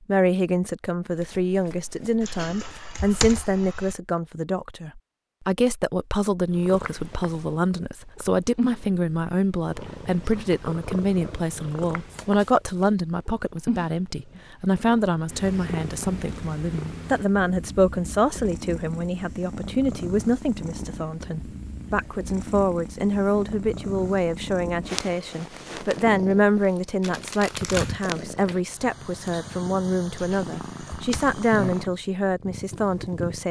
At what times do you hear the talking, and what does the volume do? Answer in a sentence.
You can hear the talking from 0.1 to 33.4 s, at a steady volume.